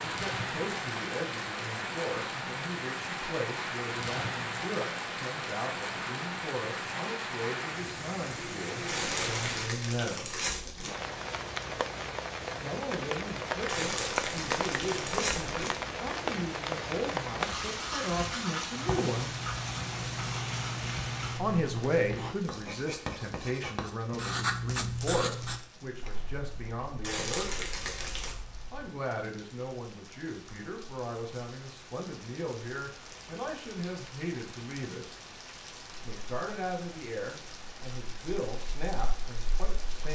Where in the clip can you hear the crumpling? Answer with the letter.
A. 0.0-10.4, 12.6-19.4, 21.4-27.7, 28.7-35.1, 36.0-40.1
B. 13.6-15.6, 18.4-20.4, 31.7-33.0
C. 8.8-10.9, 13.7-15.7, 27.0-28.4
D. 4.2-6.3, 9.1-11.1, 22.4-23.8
C.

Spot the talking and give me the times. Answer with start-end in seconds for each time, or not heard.
0.0-10.4, 12.6-19.4, 21.4-27.7, 28.7-35.1, 36.0-40.1.